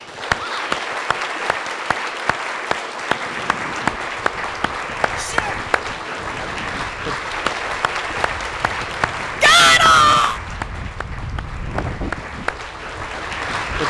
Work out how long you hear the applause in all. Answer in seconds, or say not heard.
14 s.